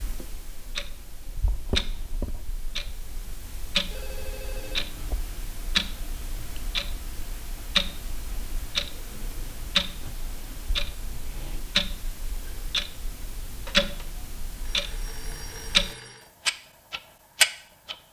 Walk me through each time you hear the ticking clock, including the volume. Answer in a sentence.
You can hear the ticking clock from 0.0 to 17.9 s, getting louder.